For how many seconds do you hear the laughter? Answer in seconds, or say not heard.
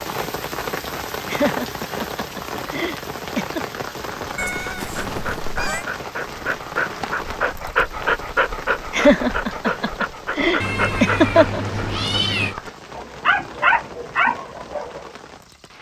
5 s.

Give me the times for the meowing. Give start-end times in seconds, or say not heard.
4.3-5.8, 10.6-12.6.